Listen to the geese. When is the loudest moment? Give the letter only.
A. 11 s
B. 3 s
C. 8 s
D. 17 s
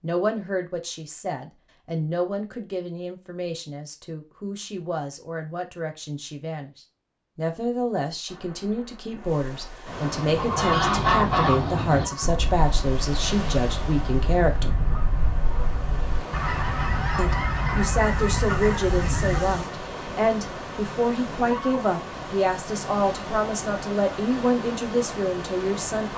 A.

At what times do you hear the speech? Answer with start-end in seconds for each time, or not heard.
0.0-14.8, 17.1-26.1.